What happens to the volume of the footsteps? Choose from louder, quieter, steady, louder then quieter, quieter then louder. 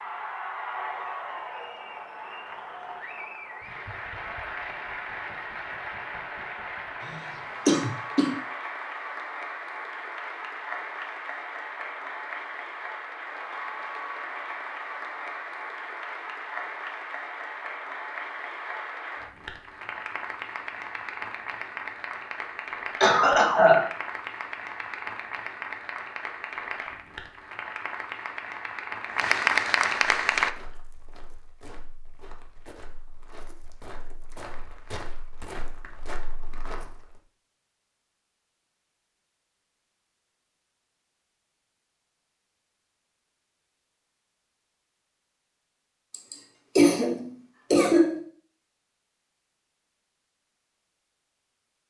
louder.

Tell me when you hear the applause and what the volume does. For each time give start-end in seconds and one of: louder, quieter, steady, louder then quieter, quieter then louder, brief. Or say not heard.
0.0-30.5 louder.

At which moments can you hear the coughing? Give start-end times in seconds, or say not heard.
7.0-8.2, 23.0-23.9, 46.1-48.2.